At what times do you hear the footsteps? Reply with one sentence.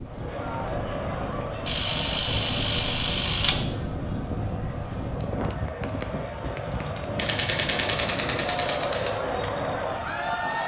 You can't hear the footsteps here.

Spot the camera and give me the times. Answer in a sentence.
The camera can be heard from 1.6 to 3.5 s and from 7.2 to 9.1 s.